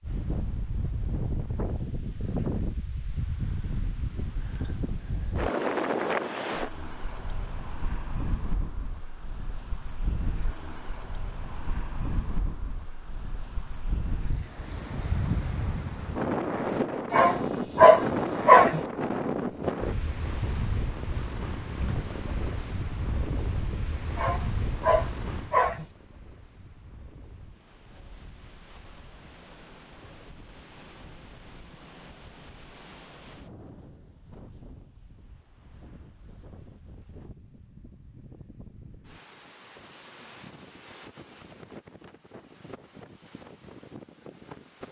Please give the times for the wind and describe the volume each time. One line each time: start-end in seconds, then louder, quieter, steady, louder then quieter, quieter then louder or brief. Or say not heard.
0.0-44.8 quieter.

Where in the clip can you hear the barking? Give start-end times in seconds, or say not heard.
17.1-18.8, 24.1-25.9.